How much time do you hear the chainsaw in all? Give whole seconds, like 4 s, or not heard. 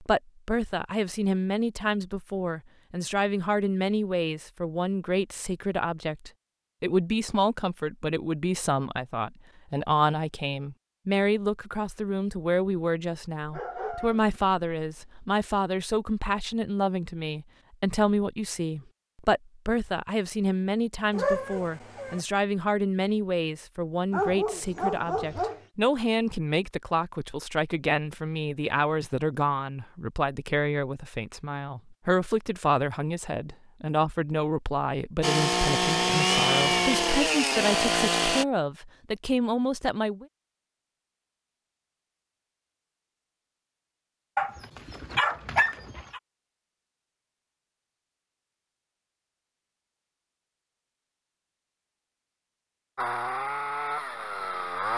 5 s.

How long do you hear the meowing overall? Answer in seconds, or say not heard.
2 s.